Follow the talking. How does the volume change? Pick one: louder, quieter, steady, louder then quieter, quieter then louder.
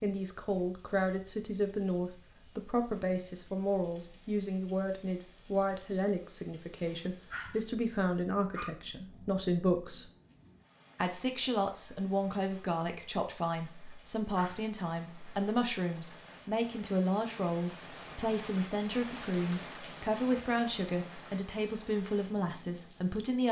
steady.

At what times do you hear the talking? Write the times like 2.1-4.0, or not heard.
0.0-10.1, 10.9-23.4.